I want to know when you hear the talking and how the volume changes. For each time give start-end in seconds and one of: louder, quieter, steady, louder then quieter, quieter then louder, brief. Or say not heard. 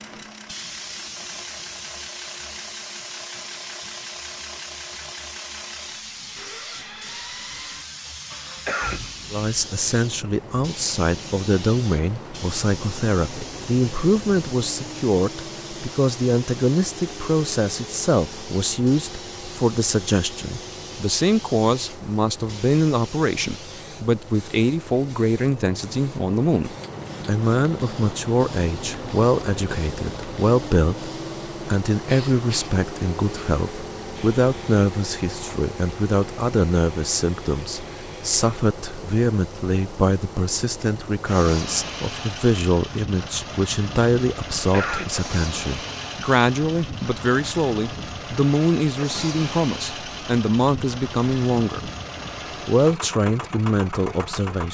9.3-51.9 steady
52.6-54.6 brief.